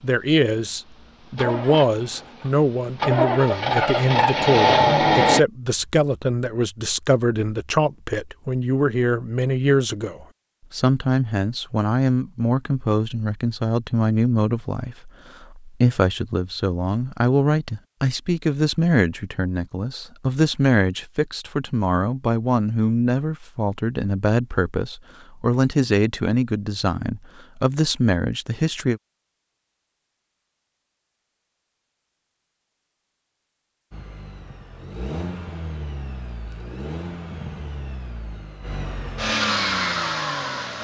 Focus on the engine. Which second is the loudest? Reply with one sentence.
The volume of the engine peaks at 5 seconds.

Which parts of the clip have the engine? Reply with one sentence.
The engine can be heard from 0.0 to 5.4 s and from 33.9 to 40.8 s.